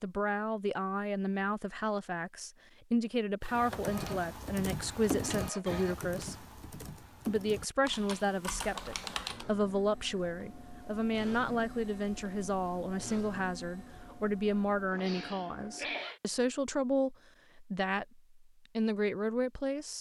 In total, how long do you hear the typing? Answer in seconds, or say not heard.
6 s.